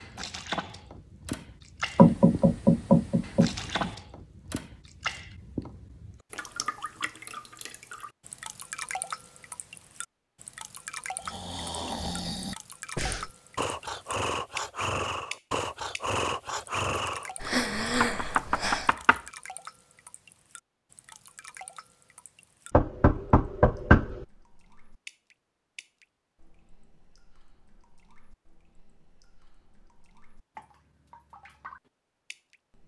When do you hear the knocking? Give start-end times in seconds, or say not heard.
1.9-3.9, 18.0-19.2, 22.7-24.2.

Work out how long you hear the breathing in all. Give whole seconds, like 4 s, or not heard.
8 s.